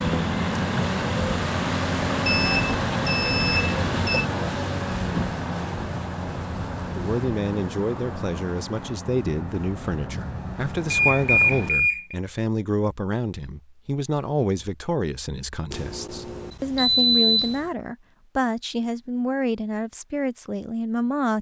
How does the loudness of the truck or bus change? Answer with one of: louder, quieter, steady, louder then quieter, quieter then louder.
quieter.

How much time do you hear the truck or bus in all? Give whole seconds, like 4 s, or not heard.
12 s.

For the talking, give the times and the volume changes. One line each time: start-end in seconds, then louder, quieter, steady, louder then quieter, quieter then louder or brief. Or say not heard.
7.0-21.3 steady.